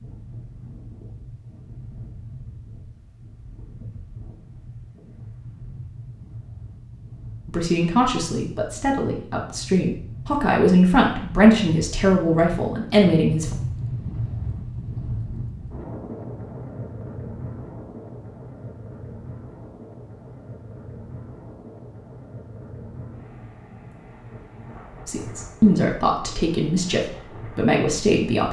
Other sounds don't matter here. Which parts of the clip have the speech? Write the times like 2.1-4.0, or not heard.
7.5-13.6, 25.1-28.4.